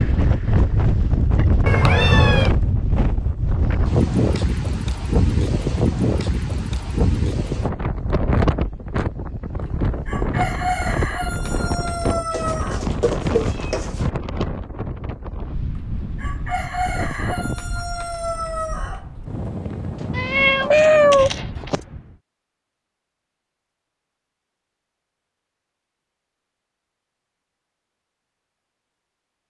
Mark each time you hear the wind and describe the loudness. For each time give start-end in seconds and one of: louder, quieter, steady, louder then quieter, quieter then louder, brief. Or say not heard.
0.0-22.2 quieter.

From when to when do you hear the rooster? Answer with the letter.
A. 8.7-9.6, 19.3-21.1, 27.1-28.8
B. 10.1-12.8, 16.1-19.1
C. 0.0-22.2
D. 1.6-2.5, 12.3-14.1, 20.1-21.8
B.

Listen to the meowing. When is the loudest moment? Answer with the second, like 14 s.
21 s.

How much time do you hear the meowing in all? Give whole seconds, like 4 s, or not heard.
4 s.